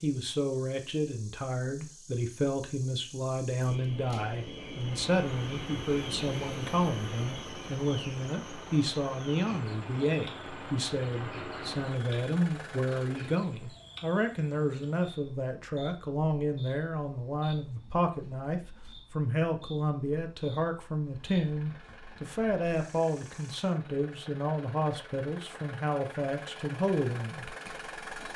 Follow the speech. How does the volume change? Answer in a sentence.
The volume of the speech stays about the same.